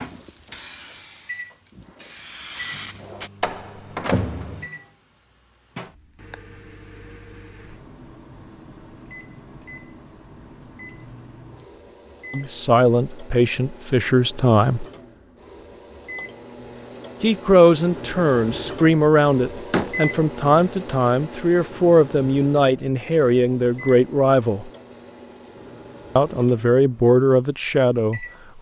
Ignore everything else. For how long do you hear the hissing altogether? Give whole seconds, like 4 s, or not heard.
3 s.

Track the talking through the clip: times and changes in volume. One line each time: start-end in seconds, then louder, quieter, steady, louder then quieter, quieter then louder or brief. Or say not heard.
12.3-14.8 brief
17.2-24.7 steady
26.1-28.2 brief.